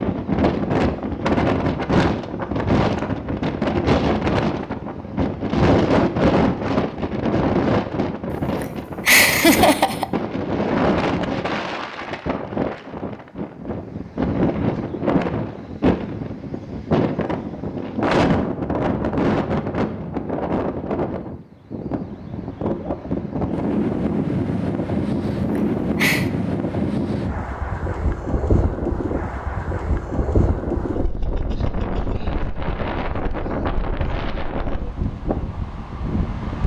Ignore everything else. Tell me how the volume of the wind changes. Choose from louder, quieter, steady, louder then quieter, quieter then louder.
quieter.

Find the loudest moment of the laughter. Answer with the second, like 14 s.
9 s.